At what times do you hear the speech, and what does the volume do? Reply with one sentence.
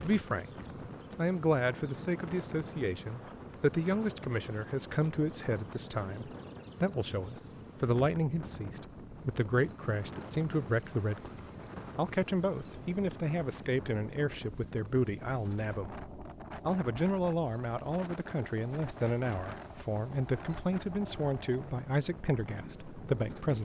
The speech can be heard briefly from 0.0 to 0.5 s; and from 1.1 to 23.6 s, at a steady volume.